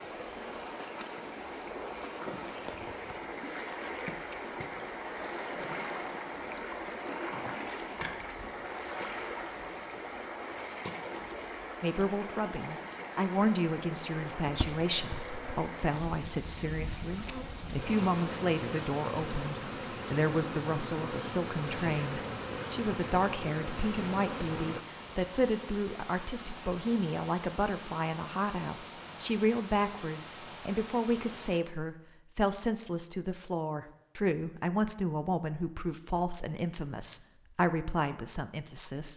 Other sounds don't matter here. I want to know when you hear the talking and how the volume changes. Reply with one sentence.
The talking can be heard from 11.8 to 39.1 s, at a steady volume.